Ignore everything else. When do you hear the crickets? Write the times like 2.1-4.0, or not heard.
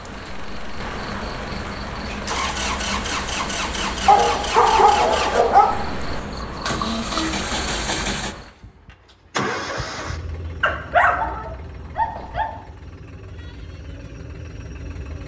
0.0-8.5.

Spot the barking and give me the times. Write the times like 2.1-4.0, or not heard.
4.0-5.8, 10.6-12.6.